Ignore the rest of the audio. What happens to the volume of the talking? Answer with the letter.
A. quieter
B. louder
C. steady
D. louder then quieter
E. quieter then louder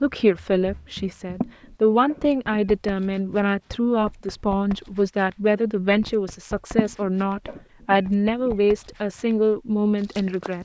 C.